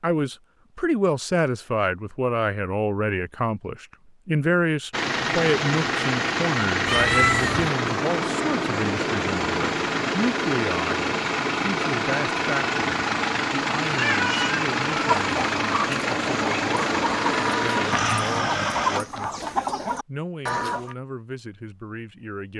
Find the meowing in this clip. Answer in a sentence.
The meowing can be heard from 6.8 to 7.7 s and from 13.9 to 14.6 s.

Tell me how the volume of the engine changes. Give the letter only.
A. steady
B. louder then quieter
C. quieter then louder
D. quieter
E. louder
A.